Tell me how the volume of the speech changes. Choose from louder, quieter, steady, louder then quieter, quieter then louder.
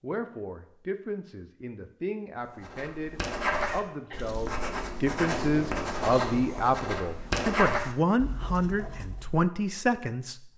louder.